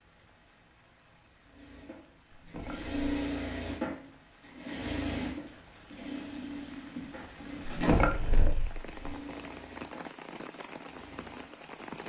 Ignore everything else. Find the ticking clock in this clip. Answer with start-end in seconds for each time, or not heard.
not heard.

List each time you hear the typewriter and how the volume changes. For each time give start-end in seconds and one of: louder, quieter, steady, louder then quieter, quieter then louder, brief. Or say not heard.
not heard.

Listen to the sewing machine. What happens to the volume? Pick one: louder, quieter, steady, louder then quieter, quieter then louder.
quieter.